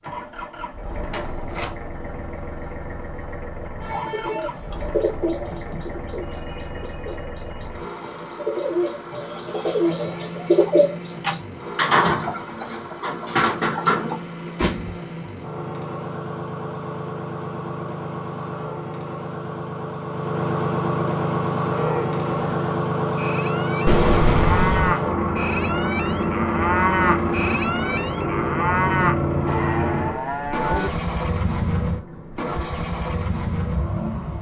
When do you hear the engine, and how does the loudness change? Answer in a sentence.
You can hear the engine from 0.0 to 34.3 s, getting louder.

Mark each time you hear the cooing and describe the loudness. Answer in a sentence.
The cooing can be heard from 3.8 to 14.2 s, getting quieter then louder.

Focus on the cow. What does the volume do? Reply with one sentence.
The loudness of the cow goes up.